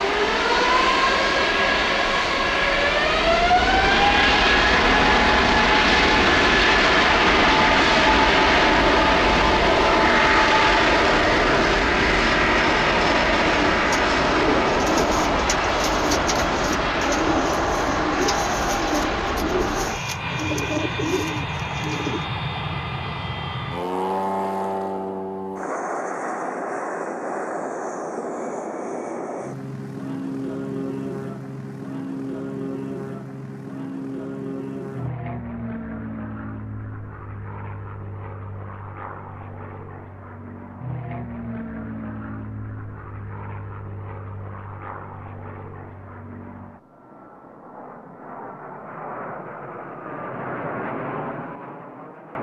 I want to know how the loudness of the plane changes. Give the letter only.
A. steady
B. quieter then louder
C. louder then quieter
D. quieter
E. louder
D.